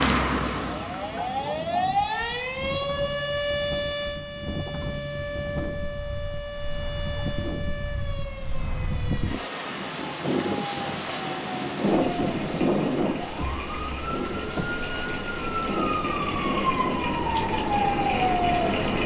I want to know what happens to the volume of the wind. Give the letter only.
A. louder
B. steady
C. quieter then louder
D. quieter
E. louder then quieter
E.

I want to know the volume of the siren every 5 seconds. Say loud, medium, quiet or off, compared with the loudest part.
loud, medium, medium, loud.